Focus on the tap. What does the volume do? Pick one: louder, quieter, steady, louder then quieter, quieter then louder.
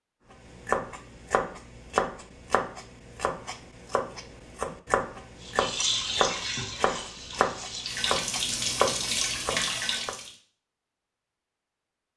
quieter then louder.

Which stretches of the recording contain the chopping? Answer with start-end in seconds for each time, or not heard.
0.5-10.2.